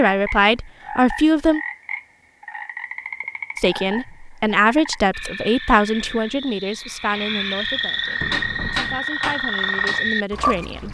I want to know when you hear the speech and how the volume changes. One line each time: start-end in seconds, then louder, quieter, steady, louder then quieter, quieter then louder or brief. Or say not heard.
0.0-1.6 brief
3.5-10.8 quieter then louder.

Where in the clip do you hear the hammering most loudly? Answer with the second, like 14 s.
9 s.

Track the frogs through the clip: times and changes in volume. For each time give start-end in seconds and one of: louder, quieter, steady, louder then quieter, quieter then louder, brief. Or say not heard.
0.1-10.8 louder.